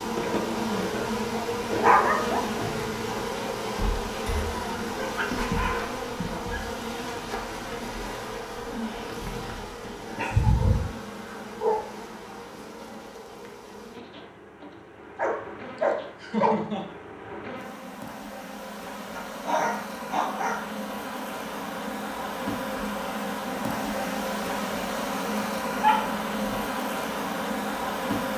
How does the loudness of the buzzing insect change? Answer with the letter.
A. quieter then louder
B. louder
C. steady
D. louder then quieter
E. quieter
A.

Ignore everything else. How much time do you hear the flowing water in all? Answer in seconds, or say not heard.
not heard.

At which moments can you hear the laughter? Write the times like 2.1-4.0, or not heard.
15.8-16.9.